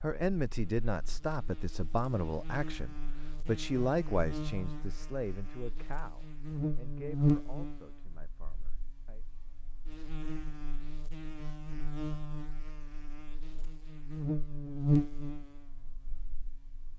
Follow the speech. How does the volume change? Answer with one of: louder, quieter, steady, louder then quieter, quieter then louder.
quieter.